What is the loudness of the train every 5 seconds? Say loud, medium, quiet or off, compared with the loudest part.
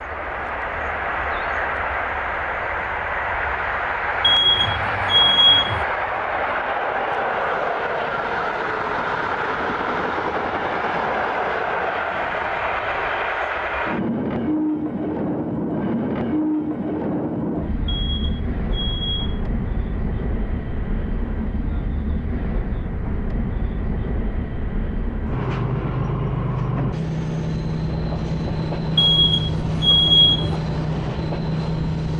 loud, loud, loud, loud, medium, loud, loud.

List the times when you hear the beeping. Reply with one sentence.
The beeping can be heard from 4.2 to 5.8 s, from 17.9 to 19.4 s and from 28.9 to 30.6 s.